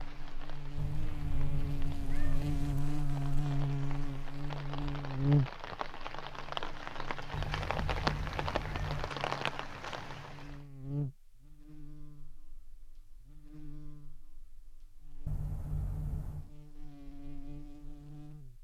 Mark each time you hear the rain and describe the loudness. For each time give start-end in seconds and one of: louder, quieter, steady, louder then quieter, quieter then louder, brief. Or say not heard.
0.0-10.6 louder.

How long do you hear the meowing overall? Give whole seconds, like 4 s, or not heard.
5 s.